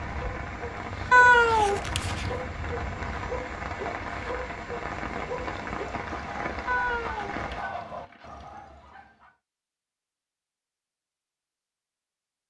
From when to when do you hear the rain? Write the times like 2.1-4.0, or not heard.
0.0-7.7.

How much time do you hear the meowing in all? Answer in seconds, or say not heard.
3 s.